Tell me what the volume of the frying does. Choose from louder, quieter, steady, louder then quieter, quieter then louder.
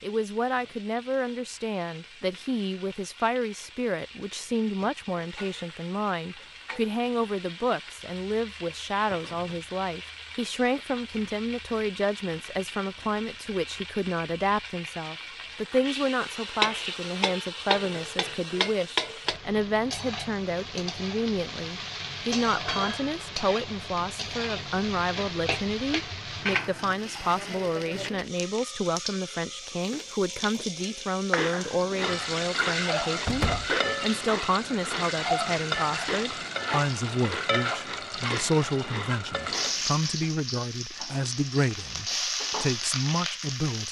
louder.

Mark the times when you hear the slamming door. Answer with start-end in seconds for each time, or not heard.
33.2-33.8.